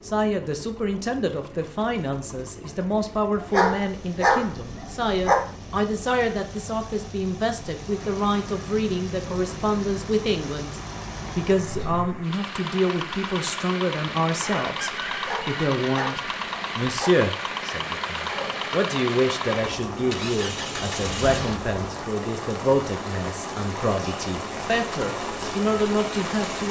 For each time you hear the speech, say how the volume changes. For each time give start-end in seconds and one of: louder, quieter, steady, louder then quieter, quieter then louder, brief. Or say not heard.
0.1-26.6 steady.